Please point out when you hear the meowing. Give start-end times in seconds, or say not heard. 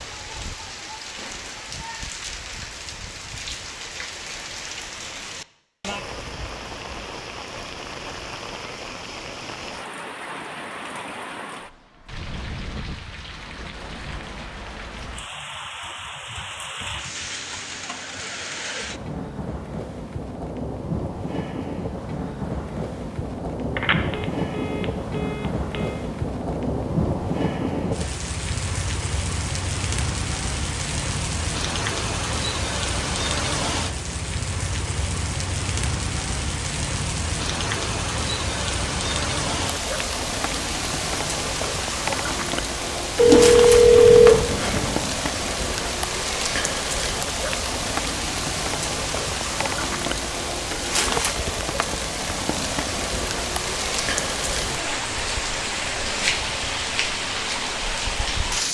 not heard.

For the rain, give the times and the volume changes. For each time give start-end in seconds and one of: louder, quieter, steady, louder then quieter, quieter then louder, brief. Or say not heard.
0.0-58.6 louder.